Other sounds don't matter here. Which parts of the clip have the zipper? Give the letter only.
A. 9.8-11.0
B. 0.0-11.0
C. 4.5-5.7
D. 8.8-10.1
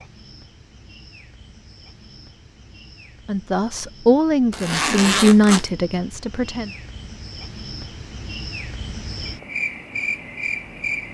C.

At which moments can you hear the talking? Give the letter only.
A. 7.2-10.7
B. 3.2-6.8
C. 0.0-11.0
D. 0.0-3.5
B.